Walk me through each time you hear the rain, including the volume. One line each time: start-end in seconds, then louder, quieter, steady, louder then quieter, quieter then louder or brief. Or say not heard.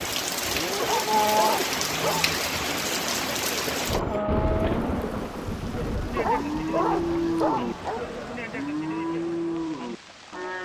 0.0-10.6 quieter.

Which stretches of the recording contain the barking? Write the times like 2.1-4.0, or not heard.
0.8-2.4, 6.2-8.1.